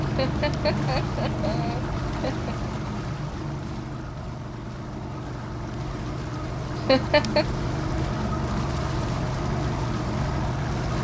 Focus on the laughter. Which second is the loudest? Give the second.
7 s.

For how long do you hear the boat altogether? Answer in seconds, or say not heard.
11 s.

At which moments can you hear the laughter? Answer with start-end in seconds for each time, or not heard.
0.1-2.5, 6.8-7.5.